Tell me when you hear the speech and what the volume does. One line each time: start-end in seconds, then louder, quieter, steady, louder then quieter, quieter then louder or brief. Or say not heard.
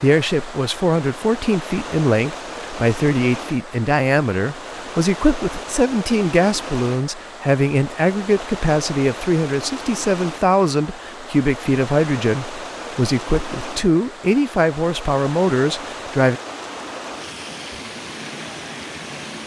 0.0-16.4 steady.